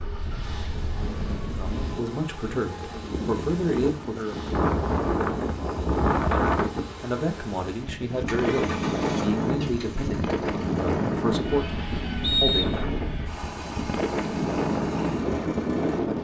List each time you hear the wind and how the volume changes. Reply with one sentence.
You can hear the wind from 0.0 to 16.1 s, getting louder.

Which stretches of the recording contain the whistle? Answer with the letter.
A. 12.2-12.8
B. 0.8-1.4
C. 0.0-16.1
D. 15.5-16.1
A.